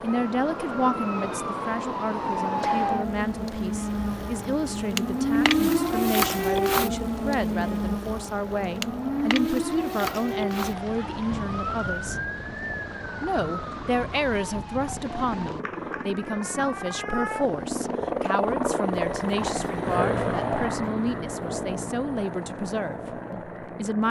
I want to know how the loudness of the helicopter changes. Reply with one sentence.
The loudness of the helicopter goes up.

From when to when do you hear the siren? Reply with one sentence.
The siren can be heard from 0.0 to 17.9 s.